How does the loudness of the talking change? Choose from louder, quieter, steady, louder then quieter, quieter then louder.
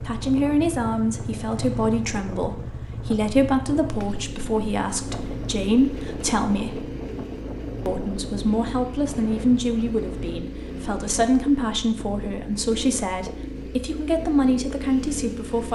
steady.